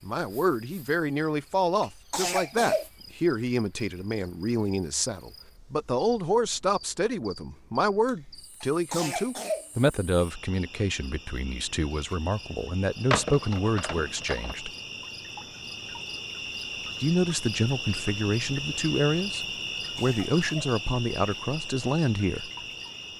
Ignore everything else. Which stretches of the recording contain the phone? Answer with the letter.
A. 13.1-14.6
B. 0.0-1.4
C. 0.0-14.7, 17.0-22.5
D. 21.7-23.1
A.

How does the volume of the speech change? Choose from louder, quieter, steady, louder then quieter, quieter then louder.
steady.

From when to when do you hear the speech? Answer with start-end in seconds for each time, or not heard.
0.0-14.7, 17.0-22.5.